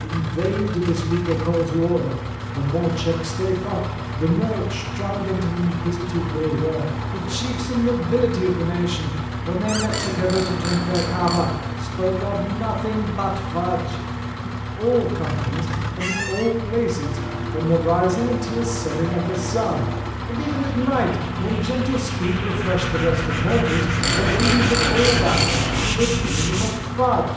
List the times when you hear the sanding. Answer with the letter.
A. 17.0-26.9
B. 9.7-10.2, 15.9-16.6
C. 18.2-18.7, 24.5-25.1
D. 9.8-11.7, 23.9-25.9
A.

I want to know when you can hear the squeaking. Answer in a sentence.
You can hear the squeaking from 9.7 to 10.2 s and from 15.9 to 16.6 s.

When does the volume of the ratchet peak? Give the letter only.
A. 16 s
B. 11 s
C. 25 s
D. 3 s
C.